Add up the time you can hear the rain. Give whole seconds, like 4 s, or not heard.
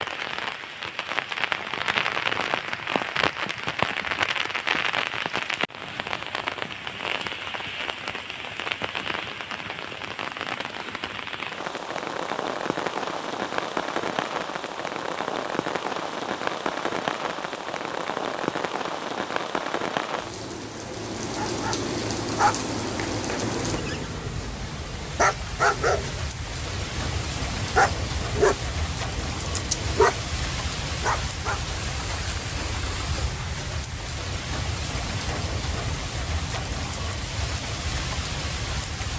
39 s.